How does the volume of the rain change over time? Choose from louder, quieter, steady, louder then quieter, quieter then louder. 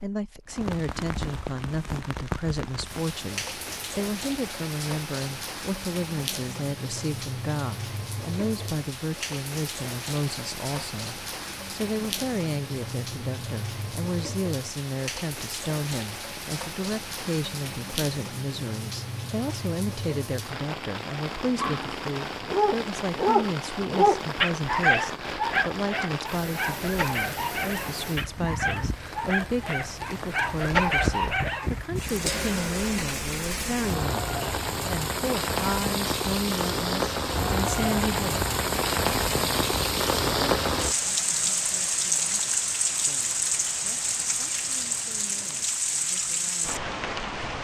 louder.